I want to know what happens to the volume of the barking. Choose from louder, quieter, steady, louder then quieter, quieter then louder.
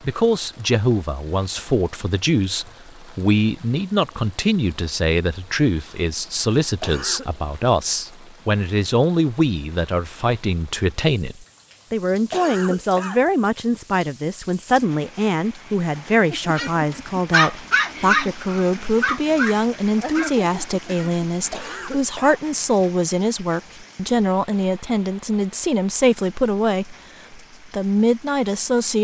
quieter.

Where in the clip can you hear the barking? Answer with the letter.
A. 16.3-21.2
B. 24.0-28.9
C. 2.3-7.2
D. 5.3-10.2
A.